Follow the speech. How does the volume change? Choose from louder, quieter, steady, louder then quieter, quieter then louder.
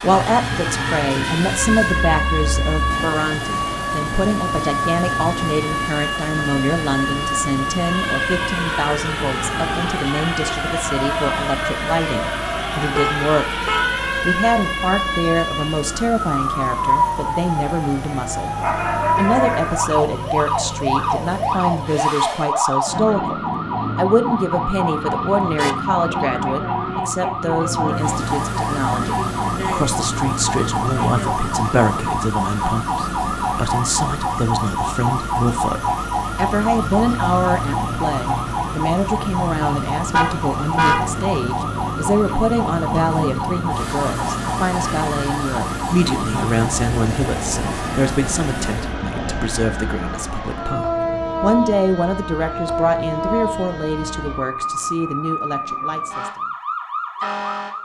steady.